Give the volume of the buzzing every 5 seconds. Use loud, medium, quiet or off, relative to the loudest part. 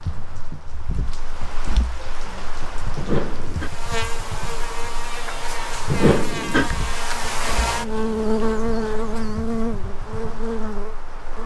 medium, loud, medium.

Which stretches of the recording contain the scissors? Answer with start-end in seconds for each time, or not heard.
3.0-3.7, 5.9-6.7.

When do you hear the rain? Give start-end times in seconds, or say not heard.
0.0-11.4.